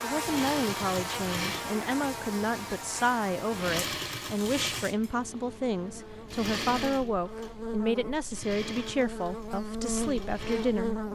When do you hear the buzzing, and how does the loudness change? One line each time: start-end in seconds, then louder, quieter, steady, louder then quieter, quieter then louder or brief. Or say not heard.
0.0-11.1 quieter then louder.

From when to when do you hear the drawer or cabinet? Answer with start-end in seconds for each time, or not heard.
not heard.